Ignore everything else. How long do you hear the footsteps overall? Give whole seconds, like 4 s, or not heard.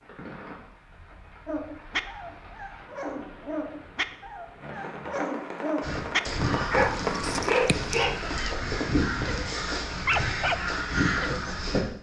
not heard.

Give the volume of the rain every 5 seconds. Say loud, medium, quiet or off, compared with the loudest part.
quiet, loud, off.